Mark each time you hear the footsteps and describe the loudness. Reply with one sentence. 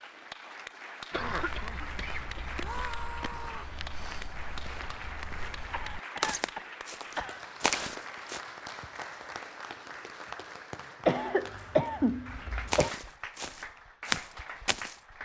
You can hear the footsteps from 1.1 to 8.4 s, getting louder; and briefly from 12.7 to 15.0 s.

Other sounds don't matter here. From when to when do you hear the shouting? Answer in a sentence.
You can hear the shouting from 2.5 to 3.8 s.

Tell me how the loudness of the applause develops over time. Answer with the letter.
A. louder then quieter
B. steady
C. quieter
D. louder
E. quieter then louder
B.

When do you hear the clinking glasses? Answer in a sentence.
The clinking glasses can't be heard in this clip.